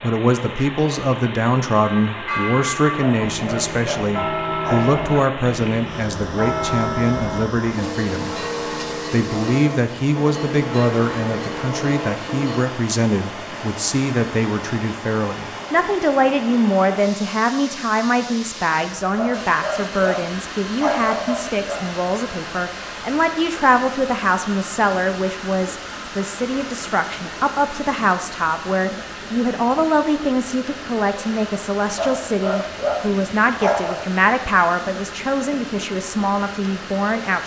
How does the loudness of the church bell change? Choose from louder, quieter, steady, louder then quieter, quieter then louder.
steady.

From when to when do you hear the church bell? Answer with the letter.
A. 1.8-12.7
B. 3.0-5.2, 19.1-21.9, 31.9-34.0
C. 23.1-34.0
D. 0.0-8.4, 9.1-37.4
A.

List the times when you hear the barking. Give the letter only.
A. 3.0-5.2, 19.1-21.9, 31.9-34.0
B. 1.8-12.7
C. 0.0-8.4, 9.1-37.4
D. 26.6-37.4
A.